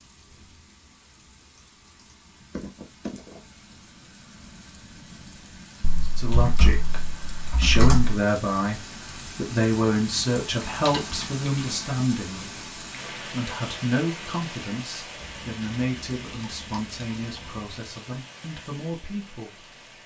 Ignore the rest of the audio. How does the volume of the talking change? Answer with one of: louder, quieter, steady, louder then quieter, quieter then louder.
quieter.